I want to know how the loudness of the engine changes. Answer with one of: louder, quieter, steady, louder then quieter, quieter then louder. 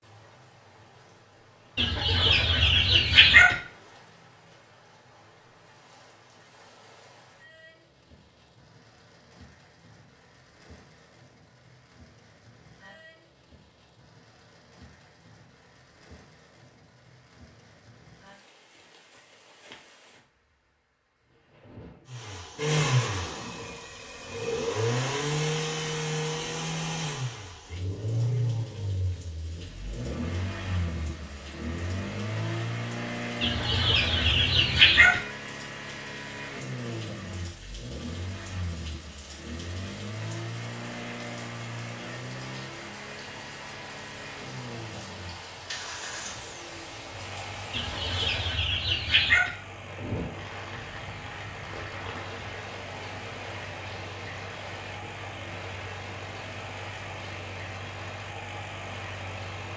quieter.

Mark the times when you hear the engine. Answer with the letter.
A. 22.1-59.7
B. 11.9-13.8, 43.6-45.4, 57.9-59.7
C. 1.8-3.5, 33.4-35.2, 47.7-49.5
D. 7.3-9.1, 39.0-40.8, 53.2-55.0
A.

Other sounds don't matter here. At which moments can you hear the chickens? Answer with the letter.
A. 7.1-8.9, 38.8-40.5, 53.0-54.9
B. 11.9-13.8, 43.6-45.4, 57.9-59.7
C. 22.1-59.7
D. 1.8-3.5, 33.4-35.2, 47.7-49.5
D.